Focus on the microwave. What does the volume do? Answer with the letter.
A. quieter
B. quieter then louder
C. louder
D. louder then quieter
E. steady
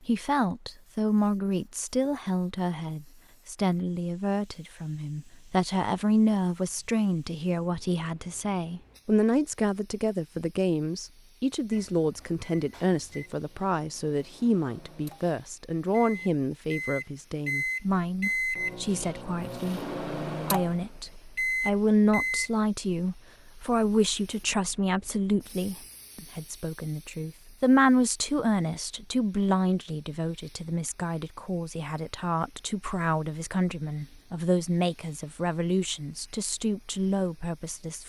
C.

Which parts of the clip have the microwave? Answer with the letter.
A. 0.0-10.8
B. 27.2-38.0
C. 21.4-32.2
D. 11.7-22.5
D.